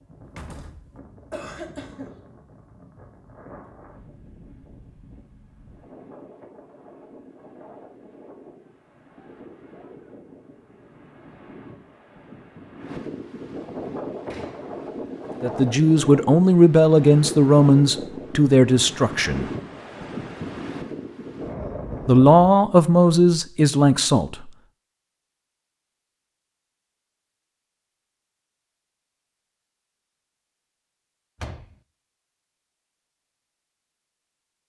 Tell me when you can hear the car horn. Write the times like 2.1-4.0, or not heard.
not heard.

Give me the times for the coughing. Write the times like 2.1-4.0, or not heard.
1.2-2.1.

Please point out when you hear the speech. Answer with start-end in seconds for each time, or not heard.
15.4-19.5, 22.1-24.5.